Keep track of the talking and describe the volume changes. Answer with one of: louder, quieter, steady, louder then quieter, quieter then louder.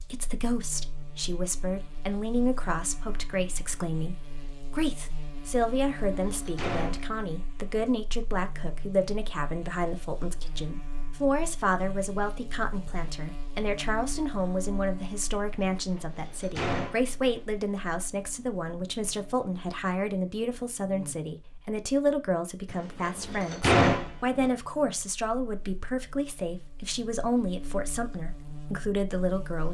steady.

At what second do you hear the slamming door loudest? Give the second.
24 s.